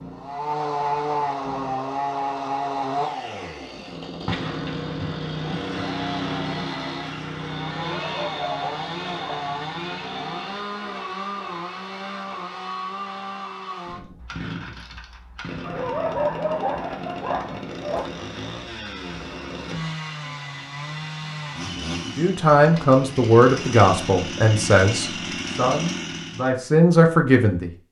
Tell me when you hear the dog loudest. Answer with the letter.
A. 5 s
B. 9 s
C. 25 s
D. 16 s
D.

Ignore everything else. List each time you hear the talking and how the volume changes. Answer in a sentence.
The talking can be heard from 22.1 to 27.8 s, getting quieter then louder.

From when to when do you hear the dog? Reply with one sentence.
The dog can be heard from 7.8 to 9.6 s and from 15.6 to 18.1 s.